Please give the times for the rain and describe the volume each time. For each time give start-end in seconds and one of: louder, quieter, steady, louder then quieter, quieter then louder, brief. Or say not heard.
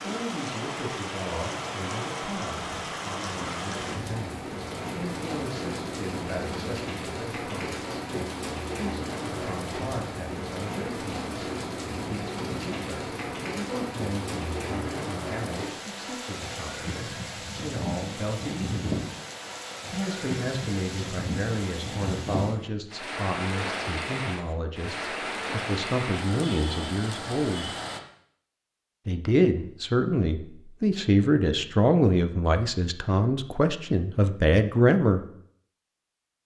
0.0-28.0 steady.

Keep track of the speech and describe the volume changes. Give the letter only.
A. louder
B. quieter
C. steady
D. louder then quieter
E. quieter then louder
A.